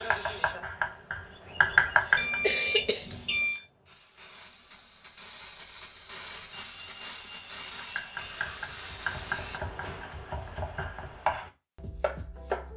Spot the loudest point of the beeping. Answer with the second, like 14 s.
3 s.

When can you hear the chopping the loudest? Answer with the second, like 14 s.
2 s.